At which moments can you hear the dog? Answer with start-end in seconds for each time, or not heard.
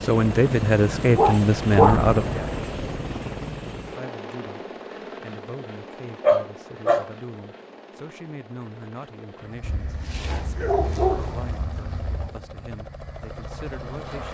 1.1-2.0, 6.2-7.1, 9.6-12.3.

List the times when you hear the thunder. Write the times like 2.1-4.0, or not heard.
1.7-3.1.